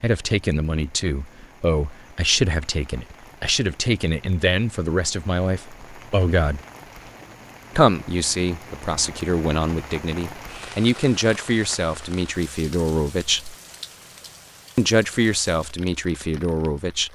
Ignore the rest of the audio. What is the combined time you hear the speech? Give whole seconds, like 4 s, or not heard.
15 s.